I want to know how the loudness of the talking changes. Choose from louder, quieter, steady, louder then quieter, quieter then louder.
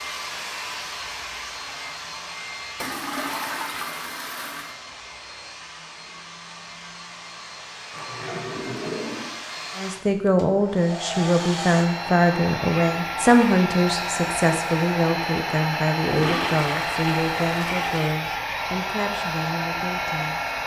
quieter.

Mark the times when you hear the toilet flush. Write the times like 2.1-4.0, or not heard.
2.8-4.8, 7.9-9.3, 16.1-18.1.